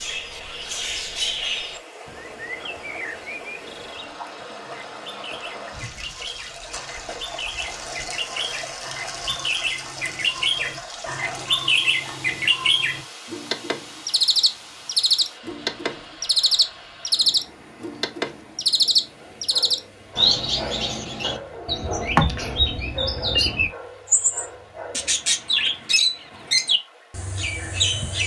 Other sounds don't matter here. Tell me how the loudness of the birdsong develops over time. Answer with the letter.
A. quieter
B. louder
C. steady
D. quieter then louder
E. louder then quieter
B.